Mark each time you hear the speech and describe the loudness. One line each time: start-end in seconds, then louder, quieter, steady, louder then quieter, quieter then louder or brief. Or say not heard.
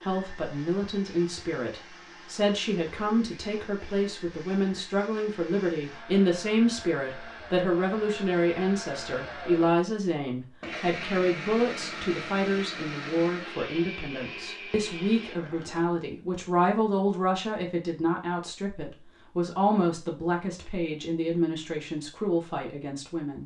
0.0-23.4 steady.